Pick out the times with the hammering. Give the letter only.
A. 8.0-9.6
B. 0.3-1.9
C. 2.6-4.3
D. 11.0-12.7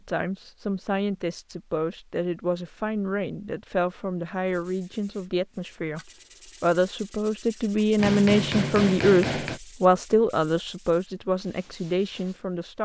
A.